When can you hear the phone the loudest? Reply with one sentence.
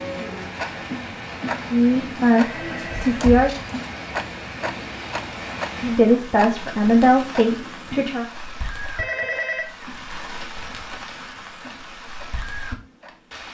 The volume of the phone peaks at 9 seconds.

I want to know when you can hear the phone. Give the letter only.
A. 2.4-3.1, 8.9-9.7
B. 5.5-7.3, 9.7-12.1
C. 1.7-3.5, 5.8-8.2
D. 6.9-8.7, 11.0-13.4
A.